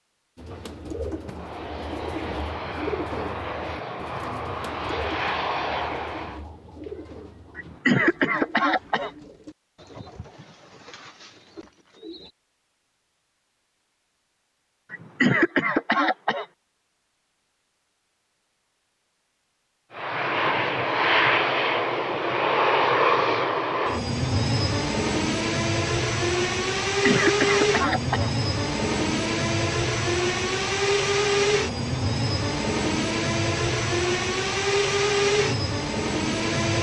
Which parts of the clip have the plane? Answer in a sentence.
You can hear the plane from 1.2 to 6.5 s and from 19.9 to 36.7 s.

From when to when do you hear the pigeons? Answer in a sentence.
You can hear the pigeons from 0.3 to 12.3 s.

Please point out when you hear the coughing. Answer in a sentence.
You can hear the coughing from 7.5 to 9.1 s, from 14.9 to 16.4 s and from 26.9 to 28.3 s.